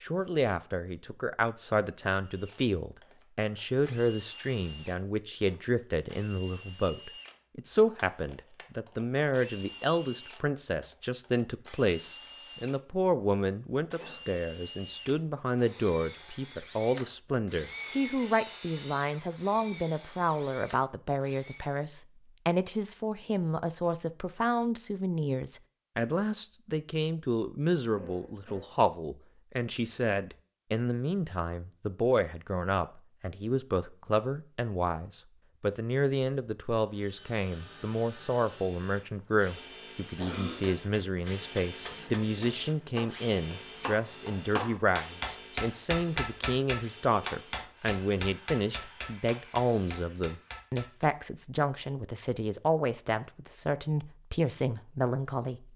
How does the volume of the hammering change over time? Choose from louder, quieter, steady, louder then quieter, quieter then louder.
louder then quieter.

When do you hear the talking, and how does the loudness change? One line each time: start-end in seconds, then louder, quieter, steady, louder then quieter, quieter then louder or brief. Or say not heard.
0.0-55.7 steady.